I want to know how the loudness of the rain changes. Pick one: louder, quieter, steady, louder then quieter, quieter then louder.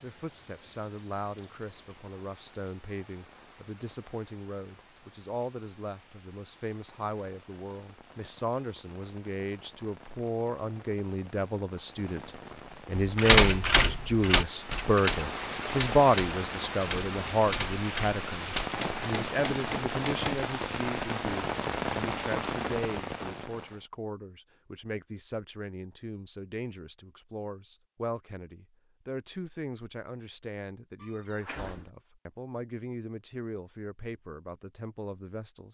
louder.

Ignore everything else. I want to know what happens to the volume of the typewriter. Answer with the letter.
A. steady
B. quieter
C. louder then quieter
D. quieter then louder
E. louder
B.